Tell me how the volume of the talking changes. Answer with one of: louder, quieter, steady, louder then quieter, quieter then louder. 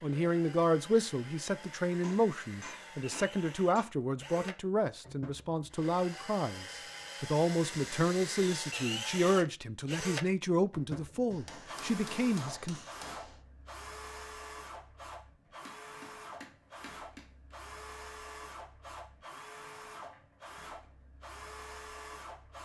steady.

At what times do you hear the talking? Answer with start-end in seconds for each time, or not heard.
0.0-12.8.